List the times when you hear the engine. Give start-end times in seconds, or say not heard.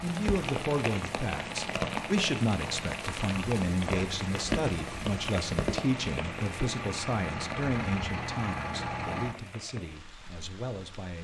0.0-9.3.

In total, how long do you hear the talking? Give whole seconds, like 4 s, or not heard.
11 s.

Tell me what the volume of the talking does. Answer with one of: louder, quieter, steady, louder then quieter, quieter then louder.
quieter.